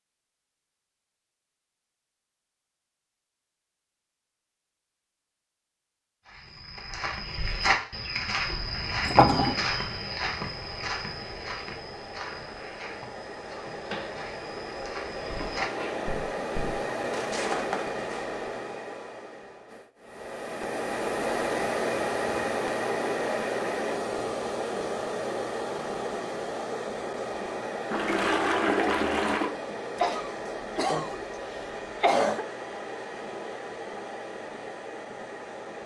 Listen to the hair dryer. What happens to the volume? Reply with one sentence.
The loudness of the hair dryer goes up, then down.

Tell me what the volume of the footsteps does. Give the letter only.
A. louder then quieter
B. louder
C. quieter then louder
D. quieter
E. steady
C.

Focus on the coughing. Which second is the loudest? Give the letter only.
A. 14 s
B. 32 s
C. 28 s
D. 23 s
B.